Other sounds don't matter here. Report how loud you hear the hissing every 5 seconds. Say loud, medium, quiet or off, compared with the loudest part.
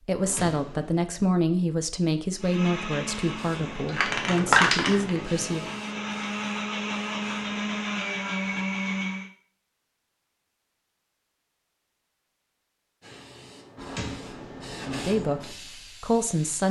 loud, quiet, quiet, quiet.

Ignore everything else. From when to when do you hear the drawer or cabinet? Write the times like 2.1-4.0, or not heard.
0.1-1.1, 13.8-15.1.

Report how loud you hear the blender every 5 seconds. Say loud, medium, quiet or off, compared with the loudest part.
medium, loud, off, off.